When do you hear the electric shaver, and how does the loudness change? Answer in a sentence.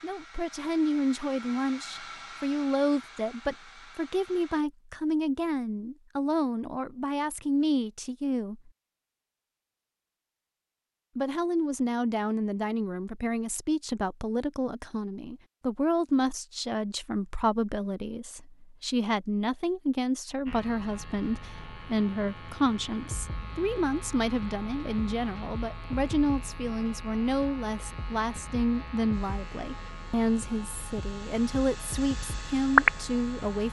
You can hear the electric shaver from 20.4 to 33.6 s, getting louder.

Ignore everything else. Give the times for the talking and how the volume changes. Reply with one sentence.
The talking can be heard from 0.0 to 8.7 s, at a steady volume; and from 11.2 to 33.6 s, at a steady volume.